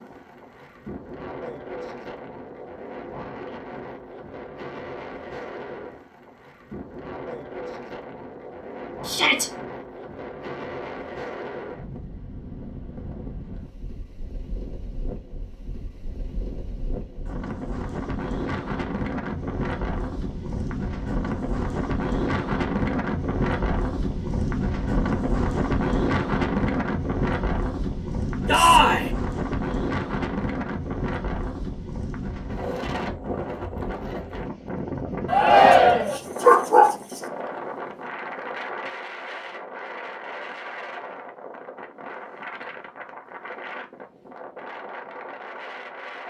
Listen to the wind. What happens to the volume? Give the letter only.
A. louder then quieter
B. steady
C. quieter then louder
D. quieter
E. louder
A.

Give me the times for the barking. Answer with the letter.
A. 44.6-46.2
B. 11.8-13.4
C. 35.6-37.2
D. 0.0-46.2
C.